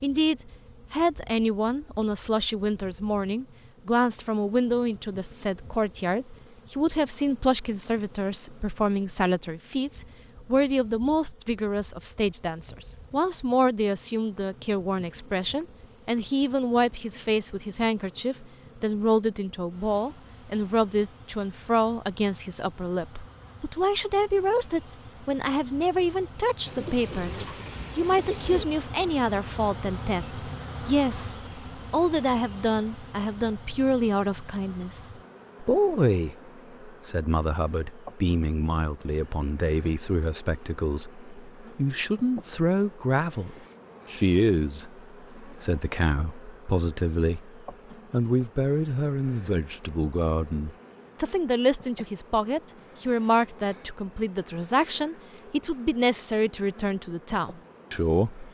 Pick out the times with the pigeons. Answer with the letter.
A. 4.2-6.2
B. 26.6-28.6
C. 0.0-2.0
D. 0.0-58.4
B.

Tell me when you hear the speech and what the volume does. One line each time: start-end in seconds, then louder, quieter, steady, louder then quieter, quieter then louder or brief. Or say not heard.
0.0-58.4 steady.